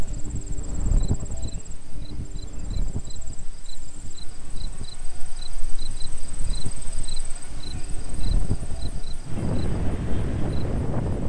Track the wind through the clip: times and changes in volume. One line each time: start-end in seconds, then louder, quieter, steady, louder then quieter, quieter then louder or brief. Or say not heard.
0.0-11.2 quieter then louder.